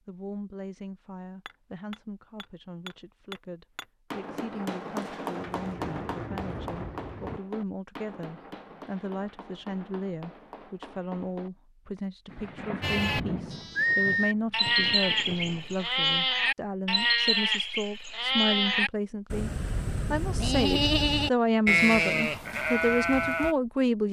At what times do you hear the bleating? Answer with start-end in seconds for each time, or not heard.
12.8-23.6.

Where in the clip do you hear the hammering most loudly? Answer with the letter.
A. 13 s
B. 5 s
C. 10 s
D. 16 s
B.